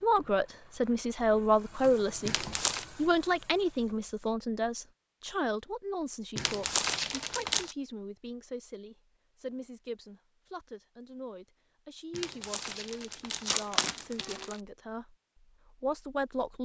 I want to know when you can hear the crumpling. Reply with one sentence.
You can hear the crumpling from 2.2 to 2.9 s, from 6.3 to 7.8 s and from 12.1 to 14.6 s.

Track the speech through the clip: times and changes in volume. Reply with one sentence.
The speech can be heard from 0.0 to 15.1 s, getting quieter; and briefly from 15.8 to 16.6 s.